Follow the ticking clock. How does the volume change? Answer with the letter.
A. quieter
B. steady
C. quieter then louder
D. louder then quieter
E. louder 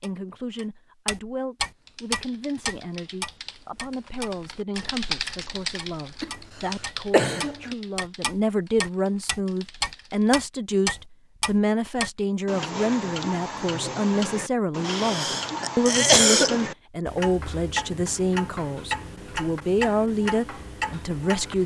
B.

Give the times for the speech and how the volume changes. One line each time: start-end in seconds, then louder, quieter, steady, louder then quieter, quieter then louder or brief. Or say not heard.
0.0-21.6 louder.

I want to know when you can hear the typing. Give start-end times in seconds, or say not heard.
1.6-10.3.